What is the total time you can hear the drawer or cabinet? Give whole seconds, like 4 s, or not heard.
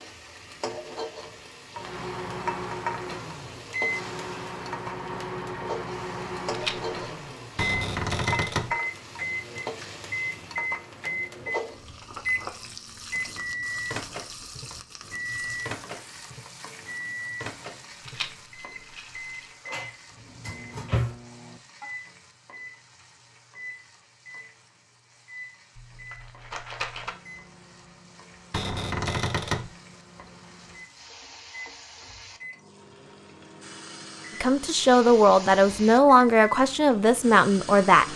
4 s.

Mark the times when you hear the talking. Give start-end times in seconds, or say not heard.
34.4-38.0.